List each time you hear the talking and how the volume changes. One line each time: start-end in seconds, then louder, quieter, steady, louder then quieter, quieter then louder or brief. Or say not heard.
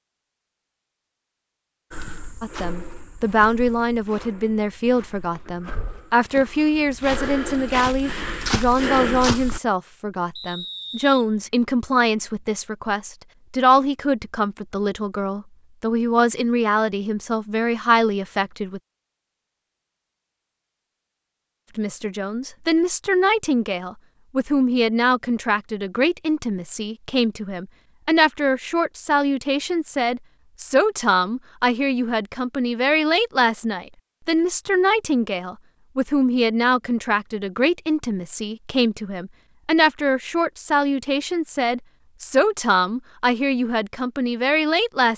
2.4-18.8 steady
21.8-45.1 steady.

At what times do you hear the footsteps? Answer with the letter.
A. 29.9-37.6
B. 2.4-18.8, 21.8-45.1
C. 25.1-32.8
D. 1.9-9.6
D.